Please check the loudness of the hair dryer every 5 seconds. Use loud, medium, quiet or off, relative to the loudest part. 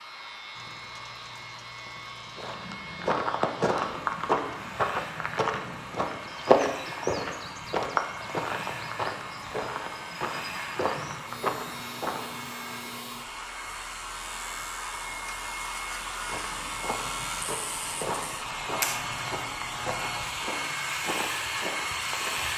medium, medium, medium, loud, loud.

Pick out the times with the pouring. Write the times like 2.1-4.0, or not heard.
0.6-2.5.